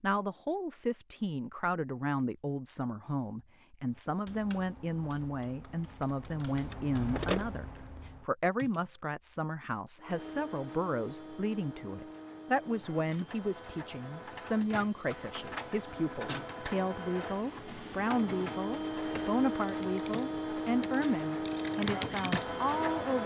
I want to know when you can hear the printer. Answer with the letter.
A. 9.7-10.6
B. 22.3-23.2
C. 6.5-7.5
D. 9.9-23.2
D.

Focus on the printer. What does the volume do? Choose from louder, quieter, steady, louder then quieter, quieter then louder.
louder.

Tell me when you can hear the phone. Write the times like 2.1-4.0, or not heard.
6.5-7.5.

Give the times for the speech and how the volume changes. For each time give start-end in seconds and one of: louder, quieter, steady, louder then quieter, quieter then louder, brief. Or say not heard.
0.0-23.2 steady.